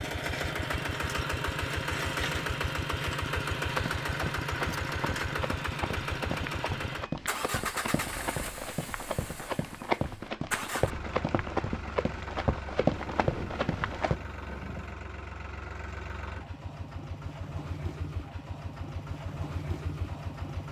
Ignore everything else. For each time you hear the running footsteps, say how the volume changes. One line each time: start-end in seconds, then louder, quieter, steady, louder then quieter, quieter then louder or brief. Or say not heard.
3.6-14.2 louder.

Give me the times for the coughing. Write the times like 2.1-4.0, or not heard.
not heard.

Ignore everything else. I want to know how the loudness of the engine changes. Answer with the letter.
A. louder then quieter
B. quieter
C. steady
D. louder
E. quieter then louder
B.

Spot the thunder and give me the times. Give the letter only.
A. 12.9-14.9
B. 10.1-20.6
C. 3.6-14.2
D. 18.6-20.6
A.